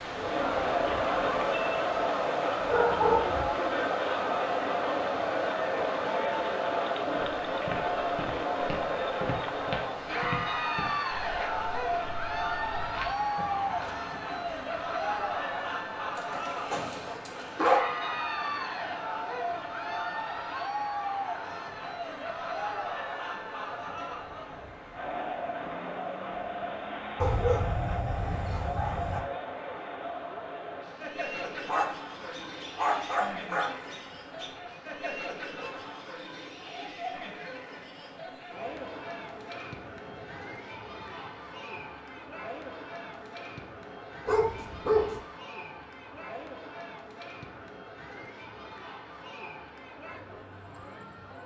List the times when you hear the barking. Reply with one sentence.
You can hear the barking from 2.6 to 3.5 s, from 16.1 to 17.8 s, from 27.2 to 29.2 s, from 31.6 to 34.5 s and from 44.2 to 45.2 s.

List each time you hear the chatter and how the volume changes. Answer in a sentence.
You can hear the chatter from 0.0 to 51.4 s, getting quieter.